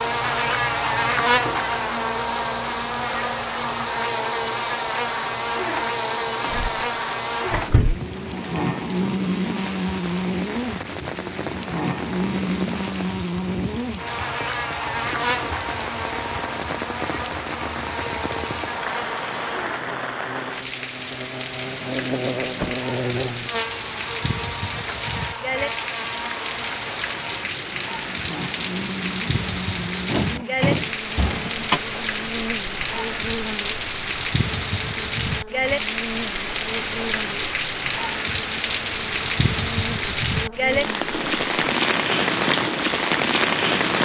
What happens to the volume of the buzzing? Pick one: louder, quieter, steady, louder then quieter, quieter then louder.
quieter.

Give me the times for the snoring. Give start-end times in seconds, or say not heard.
not heard.